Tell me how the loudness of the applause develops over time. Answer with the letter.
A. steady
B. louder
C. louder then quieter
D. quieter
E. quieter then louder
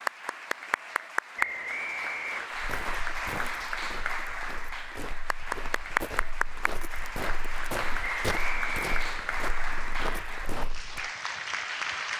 A.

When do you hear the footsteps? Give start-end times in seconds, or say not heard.
2.5-11.1.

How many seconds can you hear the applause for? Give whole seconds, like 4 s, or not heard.
12 s.